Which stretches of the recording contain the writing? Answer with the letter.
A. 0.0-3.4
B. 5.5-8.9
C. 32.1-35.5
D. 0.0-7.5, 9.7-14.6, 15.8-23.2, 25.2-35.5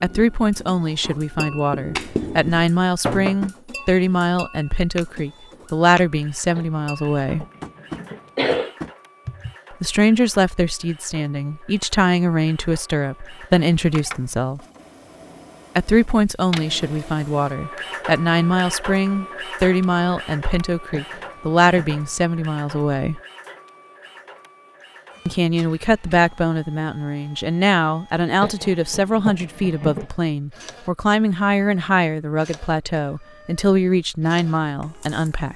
A.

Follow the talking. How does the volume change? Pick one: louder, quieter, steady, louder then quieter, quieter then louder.
steady.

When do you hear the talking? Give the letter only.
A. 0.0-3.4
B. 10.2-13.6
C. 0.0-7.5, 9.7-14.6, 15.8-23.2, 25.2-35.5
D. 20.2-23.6
C.